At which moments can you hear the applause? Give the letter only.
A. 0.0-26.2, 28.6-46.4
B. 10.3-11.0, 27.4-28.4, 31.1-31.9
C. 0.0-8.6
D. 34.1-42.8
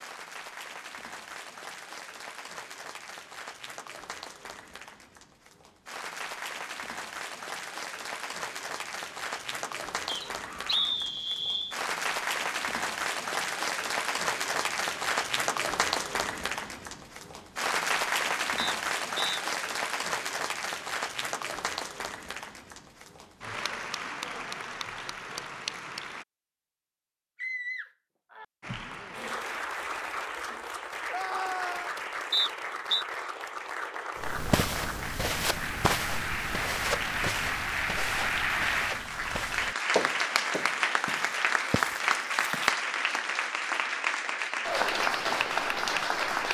A.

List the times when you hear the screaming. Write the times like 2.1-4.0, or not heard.
10.3-11.0, 27.4-28.4, 31.1-31.9.